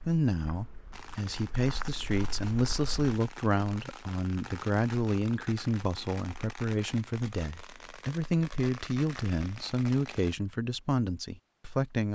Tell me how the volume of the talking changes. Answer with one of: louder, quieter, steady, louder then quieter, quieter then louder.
steady.